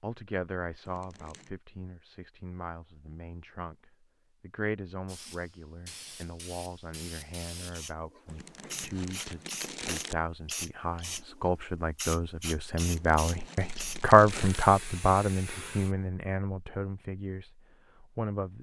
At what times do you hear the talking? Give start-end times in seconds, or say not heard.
0.0-18.5.